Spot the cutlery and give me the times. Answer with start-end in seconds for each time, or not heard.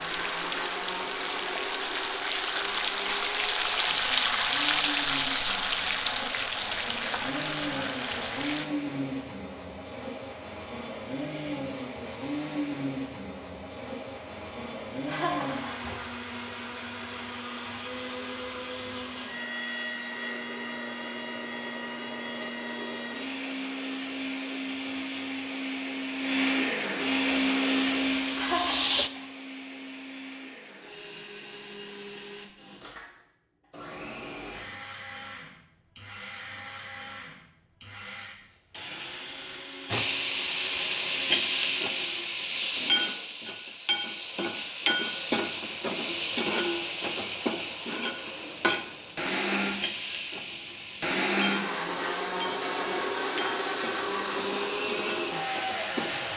not heard.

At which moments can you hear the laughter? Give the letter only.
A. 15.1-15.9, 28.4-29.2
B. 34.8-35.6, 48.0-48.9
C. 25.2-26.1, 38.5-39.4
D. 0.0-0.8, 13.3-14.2
A.